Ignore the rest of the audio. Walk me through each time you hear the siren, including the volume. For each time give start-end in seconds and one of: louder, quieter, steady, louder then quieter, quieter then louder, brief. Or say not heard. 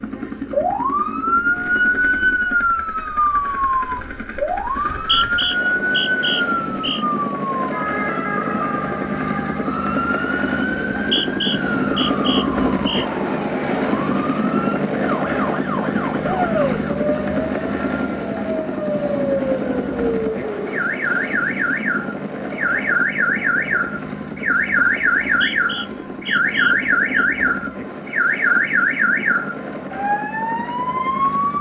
0.0-31.5 quieter then louder.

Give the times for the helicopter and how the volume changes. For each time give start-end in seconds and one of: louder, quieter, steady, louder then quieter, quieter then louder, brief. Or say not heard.
0.0-31.5 louder then quieter.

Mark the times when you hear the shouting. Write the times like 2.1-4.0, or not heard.
16.2-16.8.